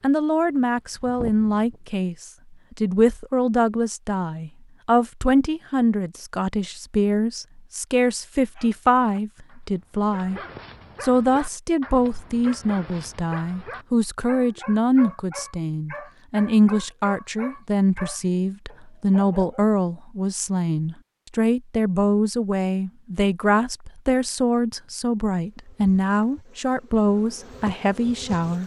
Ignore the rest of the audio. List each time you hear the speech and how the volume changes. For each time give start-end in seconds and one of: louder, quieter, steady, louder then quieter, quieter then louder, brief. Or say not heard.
0.0-10.4 steady
11.0-28.6 steady.